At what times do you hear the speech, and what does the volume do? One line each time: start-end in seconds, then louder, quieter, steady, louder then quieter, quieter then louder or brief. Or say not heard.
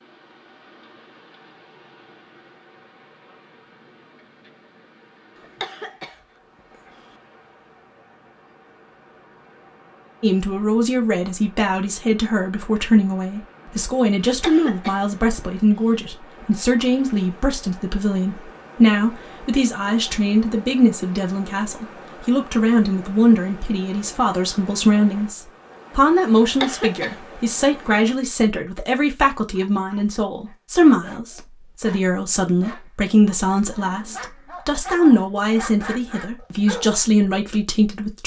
10.2-38.2 steady.